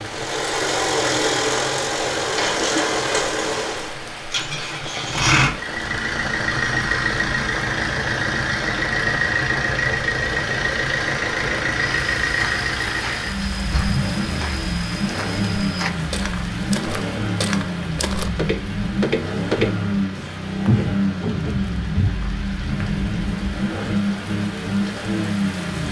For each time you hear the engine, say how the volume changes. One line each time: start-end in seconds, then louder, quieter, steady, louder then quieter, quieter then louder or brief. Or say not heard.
0.1-25.8 steady.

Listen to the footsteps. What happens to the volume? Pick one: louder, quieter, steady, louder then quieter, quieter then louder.
louder.